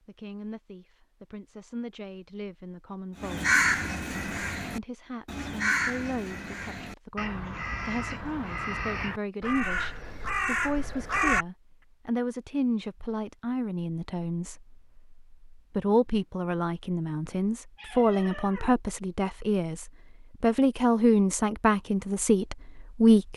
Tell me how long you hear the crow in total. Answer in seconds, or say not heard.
8 s.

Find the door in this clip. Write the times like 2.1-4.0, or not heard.
not heard.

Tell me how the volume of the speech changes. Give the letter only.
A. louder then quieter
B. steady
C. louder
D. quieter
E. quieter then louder
C.